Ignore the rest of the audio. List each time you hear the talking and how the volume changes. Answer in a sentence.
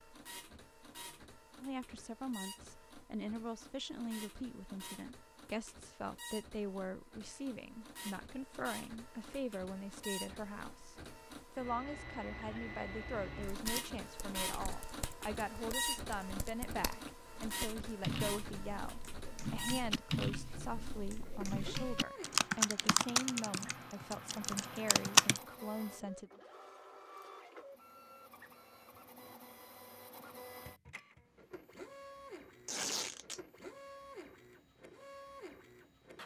The talking can be heard from 1.6 to 26.3 s, at a steady volume.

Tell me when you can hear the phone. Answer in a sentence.
The phone can't be heard in this clip.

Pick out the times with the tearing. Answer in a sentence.
You can hear the tearing from 32.6 to 33.4 s.